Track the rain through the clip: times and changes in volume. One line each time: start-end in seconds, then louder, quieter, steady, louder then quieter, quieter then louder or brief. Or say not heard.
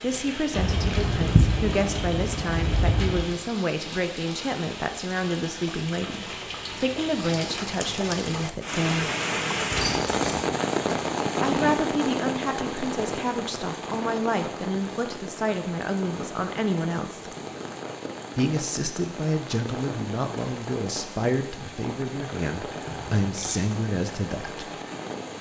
0.0-25.3 louder then quieter.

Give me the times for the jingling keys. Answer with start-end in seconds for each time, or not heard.
0.5-3.2, 9.7-11.8, 22.9-23.6.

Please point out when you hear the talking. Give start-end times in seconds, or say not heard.
0.0-9.1, 11.4-17.3, 18.4-24.7.